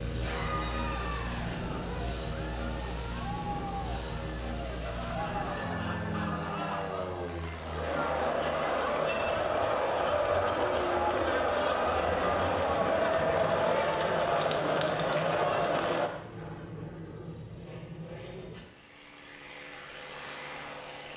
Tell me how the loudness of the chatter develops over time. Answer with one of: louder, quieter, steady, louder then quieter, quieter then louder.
louder.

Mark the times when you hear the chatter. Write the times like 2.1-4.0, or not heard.
0.1-16.1.